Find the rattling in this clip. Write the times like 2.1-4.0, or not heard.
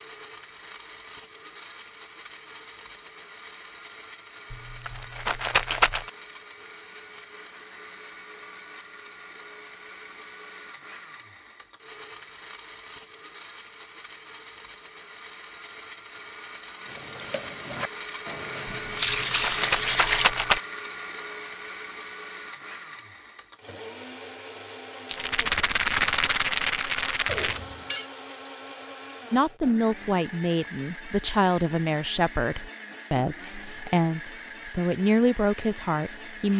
4.5-6.1, 18.9-20.6, 25.1-27.6.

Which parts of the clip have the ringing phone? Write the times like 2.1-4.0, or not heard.
27.2-28.1.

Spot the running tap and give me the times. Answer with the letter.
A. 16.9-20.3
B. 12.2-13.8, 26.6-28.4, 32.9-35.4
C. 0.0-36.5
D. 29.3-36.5
A.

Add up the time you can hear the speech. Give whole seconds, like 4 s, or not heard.
7 s.